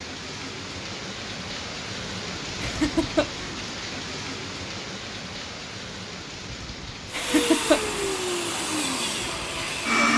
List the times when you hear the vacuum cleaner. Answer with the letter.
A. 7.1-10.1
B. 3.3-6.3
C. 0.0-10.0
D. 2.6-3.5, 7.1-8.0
A.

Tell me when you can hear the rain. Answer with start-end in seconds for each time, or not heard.
0.0-10.0.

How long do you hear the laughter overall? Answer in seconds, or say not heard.
2 s.